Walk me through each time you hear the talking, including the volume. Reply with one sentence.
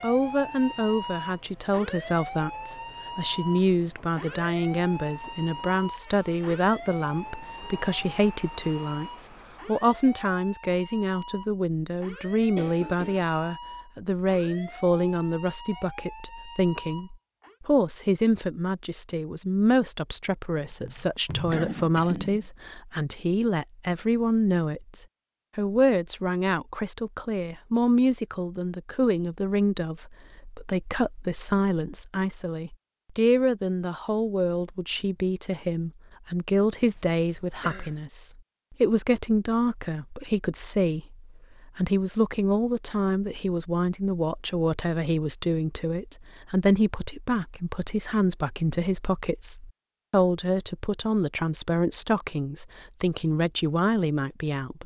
The talking can be heard from 0.0 to 54.8 s, at a steady volume.